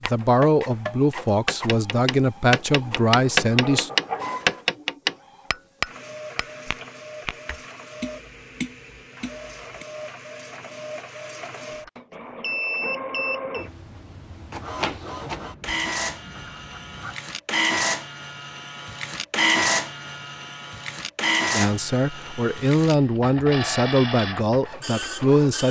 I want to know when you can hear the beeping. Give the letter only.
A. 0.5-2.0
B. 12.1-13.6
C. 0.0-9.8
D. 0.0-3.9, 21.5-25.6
B.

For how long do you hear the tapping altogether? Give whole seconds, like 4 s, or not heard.
10 s.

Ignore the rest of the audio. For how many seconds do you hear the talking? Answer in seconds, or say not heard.
8 s.